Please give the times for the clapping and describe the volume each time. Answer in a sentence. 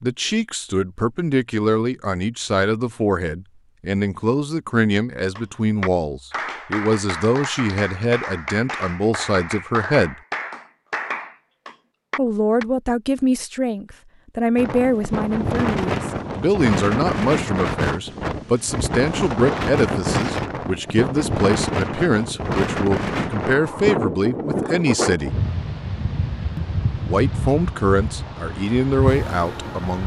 The clapping can be heard from 5.3 to 12.7 s, at a steady volume.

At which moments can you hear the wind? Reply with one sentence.
The wind can be heard from 14.6 to 30.0 s.